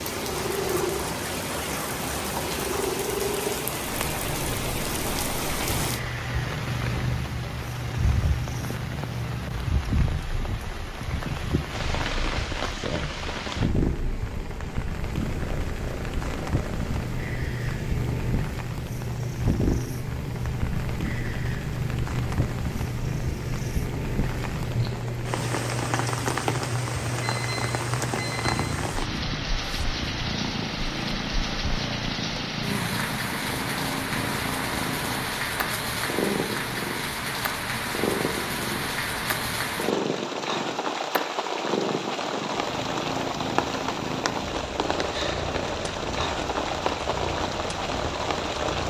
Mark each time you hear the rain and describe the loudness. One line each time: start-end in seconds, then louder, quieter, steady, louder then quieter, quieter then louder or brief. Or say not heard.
0.0-48.8 steady.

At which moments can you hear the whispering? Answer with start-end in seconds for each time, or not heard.
not heard.